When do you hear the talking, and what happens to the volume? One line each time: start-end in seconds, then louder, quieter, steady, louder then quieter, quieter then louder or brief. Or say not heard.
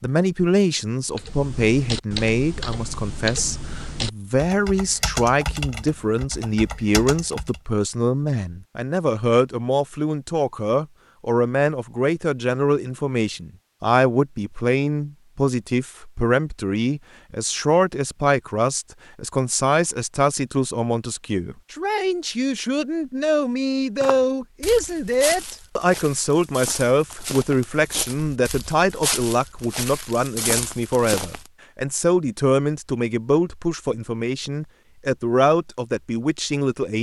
0.0-36.9 steady.